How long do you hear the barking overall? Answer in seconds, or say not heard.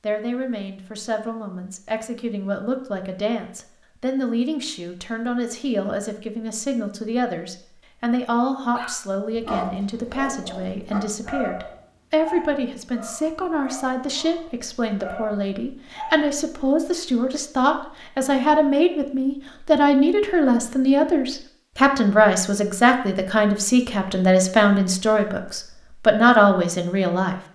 8 s.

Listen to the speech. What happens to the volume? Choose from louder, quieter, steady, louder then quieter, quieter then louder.
louder.